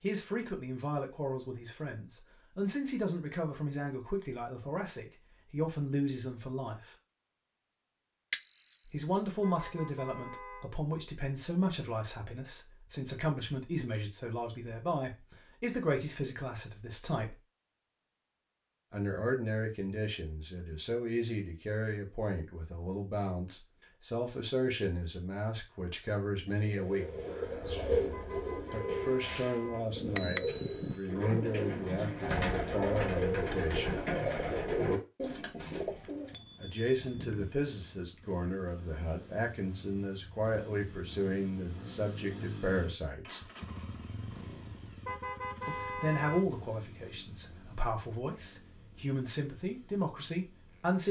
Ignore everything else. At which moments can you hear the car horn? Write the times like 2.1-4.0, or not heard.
9.4-10.7, 28.1-29.8, 45.0-46.5.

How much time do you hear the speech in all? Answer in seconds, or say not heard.
41 s.